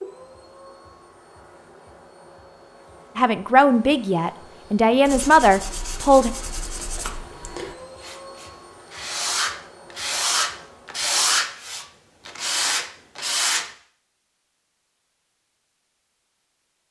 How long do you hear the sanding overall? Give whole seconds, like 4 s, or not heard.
9 s.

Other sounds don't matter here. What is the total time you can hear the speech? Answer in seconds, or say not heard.
3 s.